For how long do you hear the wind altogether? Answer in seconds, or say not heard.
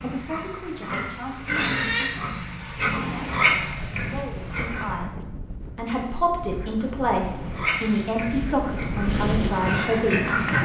7 s.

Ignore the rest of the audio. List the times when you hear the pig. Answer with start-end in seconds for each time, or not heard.
0.0-5.0, 7.5-10.5.